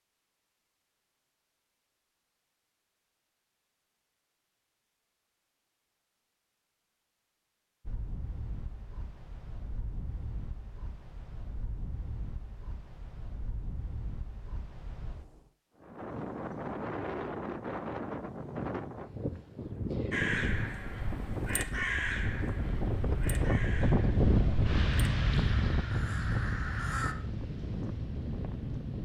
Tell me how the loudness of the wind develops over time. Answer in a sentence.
The volume of the wind goes up.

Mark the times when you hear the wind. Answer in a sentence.
The wind can be heard from 7.8 to 29.0 s.